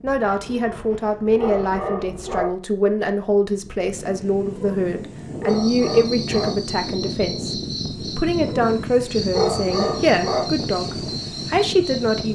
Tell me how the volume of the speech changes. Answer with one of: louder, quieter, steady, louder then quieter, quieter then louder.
steady.